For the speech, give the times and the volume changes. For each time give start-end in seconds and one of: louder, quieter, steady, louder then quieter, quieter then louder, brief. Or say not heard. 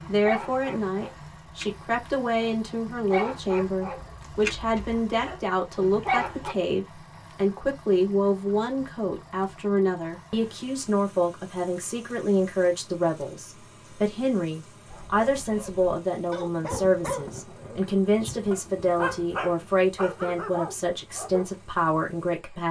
0.1-22.6 steady.